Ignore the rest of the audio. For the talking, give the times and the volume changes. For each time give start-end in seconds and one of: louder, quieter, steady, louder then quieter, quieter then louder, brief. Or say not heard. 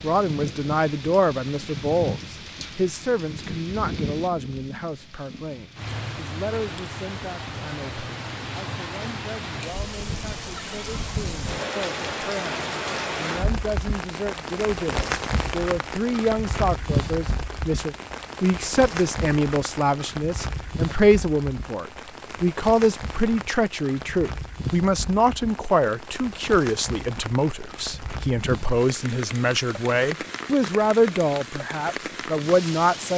0.0-33.1 quieter then louder.